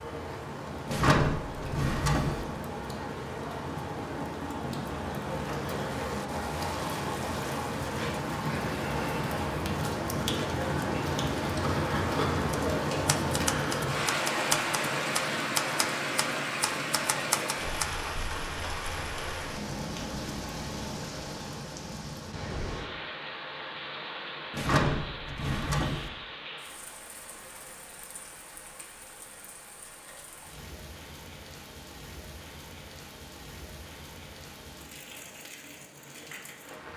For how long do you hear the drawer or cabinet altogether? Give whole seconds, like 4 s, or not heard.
3 s.